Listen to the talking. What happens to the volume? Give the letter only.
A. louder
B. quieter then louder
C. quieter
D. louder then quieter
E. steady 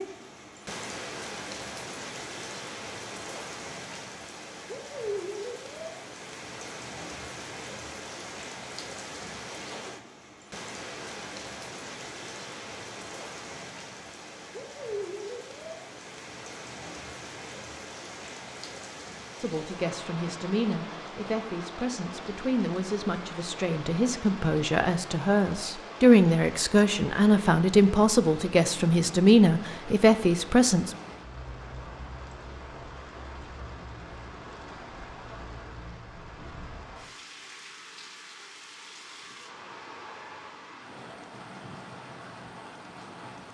A.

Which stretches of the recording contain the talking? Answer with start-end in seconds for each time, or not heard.
19.4-30.9.